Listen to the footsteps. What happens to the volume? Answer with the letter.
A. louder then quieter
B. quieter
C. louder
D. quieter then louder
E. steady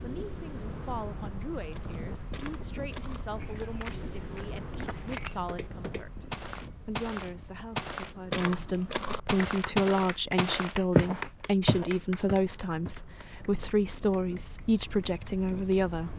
C.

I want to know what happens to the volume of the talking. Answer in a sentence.
The volume of the talking goes up.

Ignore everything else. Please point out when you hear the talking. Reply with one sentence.
You can hear the talking from 0.0 to 16.1 s.